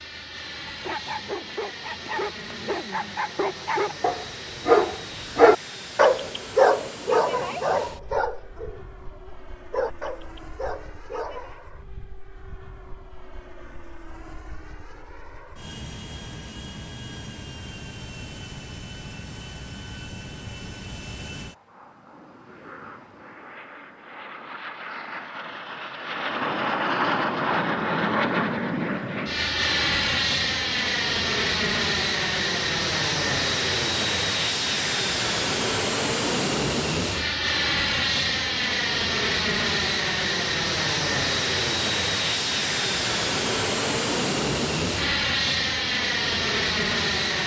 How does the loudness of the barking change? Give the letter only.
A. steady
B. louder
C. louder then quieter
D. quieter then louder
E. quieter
C.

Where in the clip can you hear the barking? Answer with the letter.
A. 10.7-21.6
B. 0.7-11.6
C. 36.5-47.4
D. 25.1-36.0
B.